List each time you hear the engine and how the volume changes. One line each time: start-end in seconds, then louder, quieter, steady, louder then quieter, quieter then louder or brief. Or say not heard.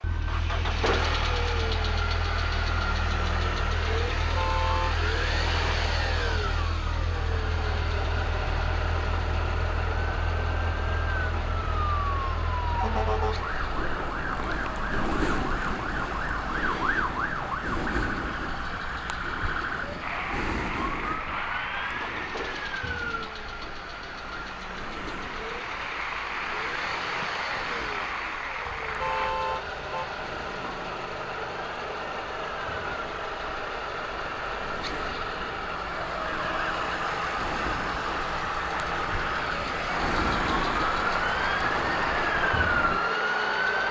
0.0-43.8 quieter then louder.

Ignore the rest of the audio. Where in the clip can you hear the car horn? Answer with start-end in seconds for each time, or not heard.
4.2-5.0, 28.6-30.1.